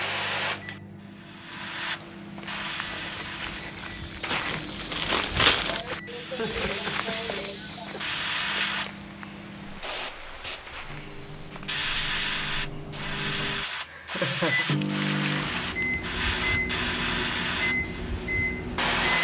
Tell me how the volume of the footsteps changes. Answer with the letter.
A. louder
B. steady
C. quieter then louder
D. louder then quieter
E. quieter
E.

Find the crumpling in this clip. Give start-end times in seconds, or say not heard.
4.2-5.8, 14.7-16.1.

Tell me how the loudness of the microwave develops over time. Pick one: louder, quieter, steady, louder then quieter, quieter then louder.
louder.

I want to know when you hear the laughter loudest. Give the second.
14 s.